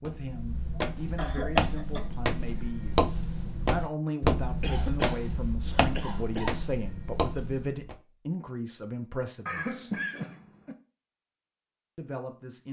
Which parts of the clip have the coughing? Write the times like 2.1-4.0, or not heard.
0.9-2.1, 4.6-6.6, 9.4-10.8.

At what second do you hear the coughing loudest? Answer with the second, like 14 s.
10 s.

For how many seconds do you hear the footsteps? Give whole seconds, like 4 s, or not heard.
8 s.